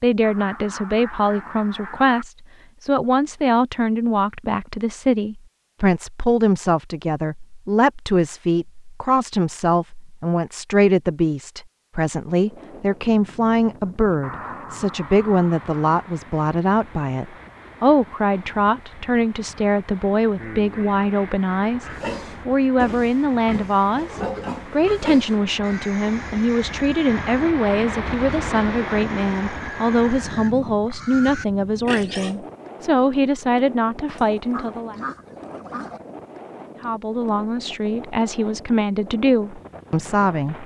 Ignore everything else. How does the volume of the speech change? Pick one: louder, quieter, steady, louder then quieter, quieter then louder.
steady.